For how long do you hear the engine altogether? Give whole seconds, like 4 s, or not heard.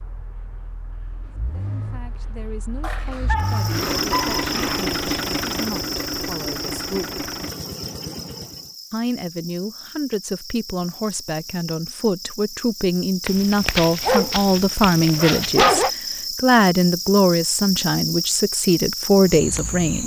9 s.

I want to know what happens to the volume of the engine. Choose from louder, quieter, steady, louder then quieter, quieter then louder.
louder then quieter.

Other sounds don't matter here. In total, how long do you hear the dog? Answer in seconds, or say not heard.
5 s.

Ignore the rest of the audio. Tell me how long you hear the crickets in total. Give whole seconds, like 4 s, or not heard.
17 s.